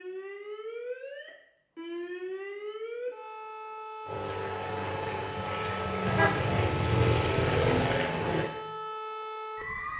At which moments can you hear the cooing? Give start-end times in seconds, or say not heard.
not heard.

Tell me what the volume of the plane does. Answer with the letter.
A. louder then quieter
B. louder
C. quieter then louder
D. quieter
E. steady
B.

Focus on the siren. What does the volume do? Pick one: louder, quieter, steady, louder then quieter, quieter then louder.
steady.